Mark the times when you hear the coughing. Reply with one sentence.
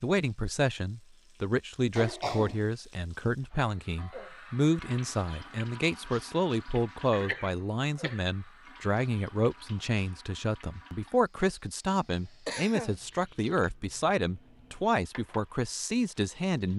The coughing can be heard from 1.9 to 2.6 s, from 7.1 to 8.2 s and from 11.9 to 13.0 s.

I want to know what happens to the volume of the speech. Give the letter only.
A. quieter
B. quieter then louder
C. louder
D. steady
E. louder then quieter
D.